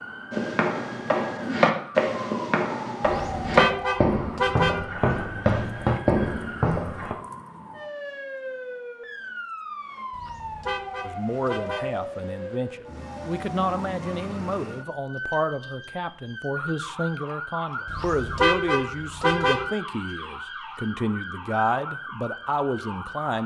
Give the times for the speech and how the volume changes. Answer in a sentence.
You can hear the speech from 11.0 to 23.4 s, at a steady volume.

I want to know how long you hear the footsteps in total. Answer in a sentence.
The footsteps can be heard for 7 seconds in total.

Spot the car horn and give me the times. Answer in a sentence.
You can hear the car horn from 3.0 to 4.8 s, from 10.1 to 11.9 s and from 17.9 to 19.6 s.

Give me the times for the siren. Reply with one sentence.
The siren can be heard from 0.0 to 23.4 s.